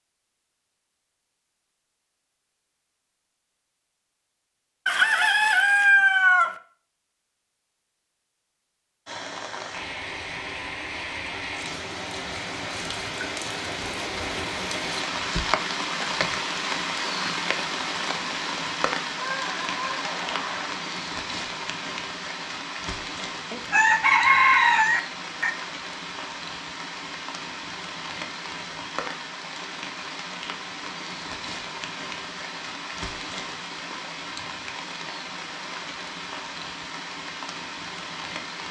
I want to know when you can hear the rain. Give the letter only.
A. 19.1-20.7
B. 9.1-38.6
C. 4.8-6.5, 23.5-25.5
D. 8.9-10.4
B.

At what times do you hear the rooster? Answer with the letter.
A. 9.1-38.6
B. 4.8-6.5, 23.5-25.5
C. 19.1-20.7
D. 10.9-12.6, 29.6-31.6
B.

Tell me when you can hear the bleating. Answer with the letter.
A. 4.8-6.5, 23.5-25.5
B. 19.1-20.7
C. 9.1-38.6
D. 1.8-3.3
B.